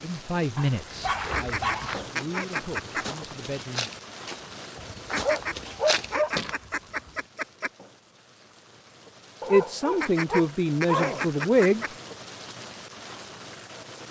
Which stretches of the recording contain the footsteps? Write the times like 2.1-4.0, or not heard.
1.0-6.5.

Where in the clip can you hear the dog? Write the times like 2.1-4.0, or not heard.
0.6-2.0, 4.8-7.1, 9.4-11.2.